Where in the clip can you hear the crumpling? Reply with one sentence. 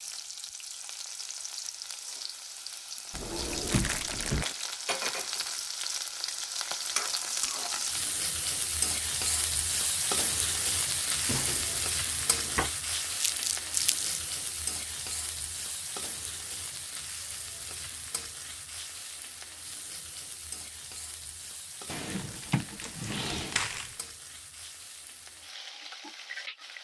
The crumpling can be heard from 3.6 to 4.6 s, from 13.2 to 14.2 s and from 22.1 to 24.0 s.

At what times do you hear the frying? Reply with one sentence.
You can hear the frying from 0.0 to 26.7 s.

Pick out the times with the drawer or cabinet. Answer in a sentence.
You can hear the drawer or cabinet from 3.1 to 4.5 s, from 11.2 to 12.7 s and from 21.9 to 23.6 s.